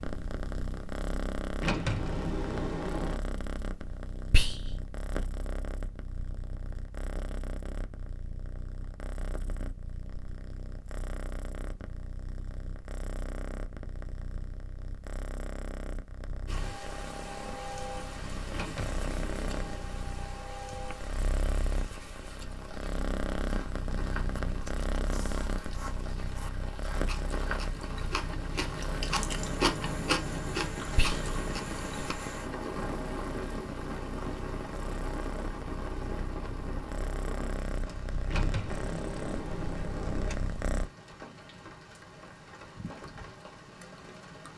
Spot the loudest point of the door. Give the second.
2 s.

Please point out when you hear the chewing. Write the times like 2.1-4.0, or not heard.
24.3-32.1.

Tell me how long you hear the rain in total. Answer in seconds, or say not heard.
28 s.